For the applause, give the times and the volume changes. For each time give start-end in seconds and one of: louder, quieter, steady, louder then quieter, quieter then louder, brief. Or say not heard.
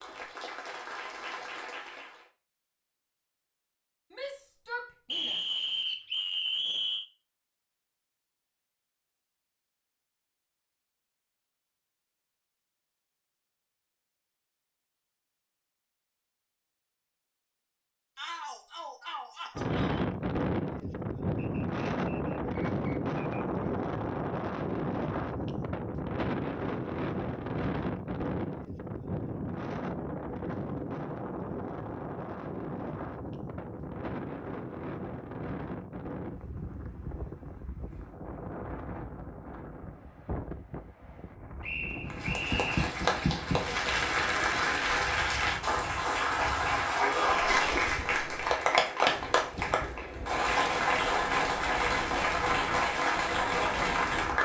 0.0-2.2 brief
42.0-54.3 steady.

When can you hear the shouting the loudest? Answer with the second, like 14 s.
47 s.